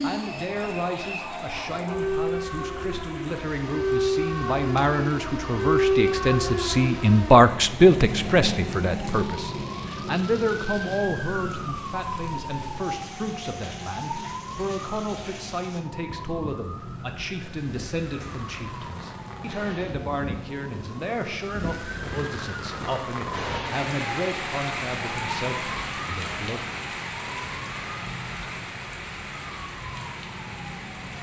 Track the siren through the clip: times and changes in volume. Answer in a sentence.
The siren can be heard from 0.0 to 31.1 s, getting quieter.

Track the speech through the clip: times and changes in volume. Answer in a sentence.
The speech can be heard from 0.0 to 26.6 s, getting louder then quieter.